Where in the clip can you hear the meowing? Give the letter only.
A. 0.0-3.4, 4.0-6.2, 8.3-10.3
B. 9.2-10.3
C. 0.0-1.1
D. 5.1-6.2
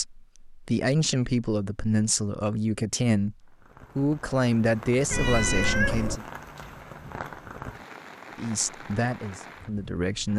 D.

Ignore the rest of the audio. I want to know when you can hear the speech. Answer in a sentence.
You can hear the speech from 0.0 to 3.4 s, from 4.0 to 6.2 s and from 8.3 to 10.3 s.